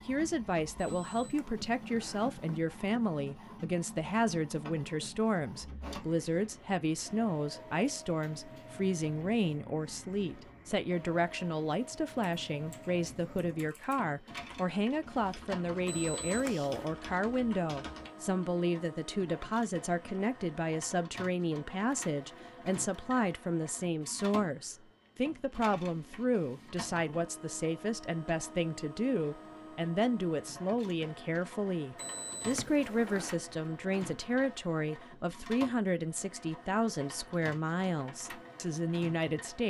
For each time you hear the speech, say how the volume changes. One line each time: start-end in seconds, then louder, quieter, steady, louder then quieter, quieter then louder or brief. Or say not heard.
0.1-39.6 steady.